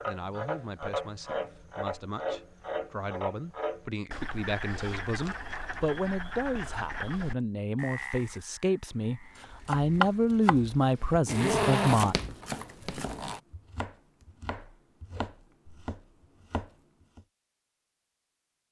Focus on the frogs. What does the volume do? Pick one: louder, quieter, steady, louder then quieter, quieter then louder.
quieter.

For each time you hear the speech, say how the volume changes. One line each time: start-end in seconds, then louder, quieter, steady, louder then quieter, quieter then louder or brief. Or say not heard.
0.0-12.2 louder.